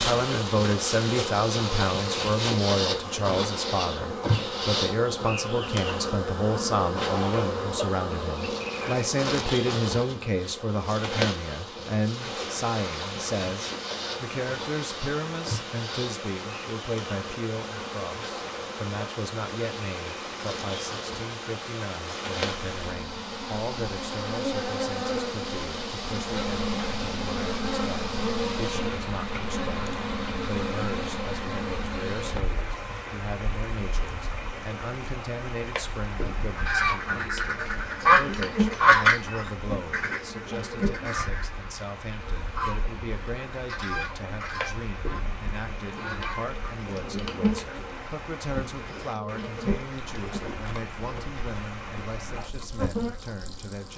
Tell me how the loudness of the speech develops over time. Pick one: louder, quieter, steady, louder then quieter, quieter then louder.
quieter.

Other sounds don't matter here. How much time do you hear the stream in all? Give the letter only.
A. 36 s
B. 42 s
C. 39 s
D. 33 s
B.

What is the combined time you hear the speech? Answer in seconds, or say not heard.
54 s.